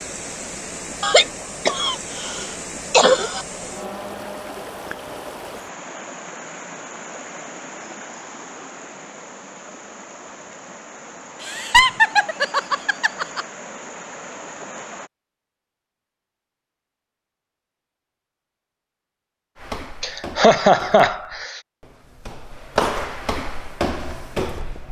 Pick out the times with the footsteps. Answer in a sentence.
You can hear the footsteps from 19.6 to 24.8 s.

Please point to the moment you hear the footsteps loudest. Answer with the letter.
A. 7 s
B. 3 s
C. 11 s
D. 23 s
D.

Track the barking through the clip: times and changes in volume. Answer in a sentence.
The barking can't be heard in this clip.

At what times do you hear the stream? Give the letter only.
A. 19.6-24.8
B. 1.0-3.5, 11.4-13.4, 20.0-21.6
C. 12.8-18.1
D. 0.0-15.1
D.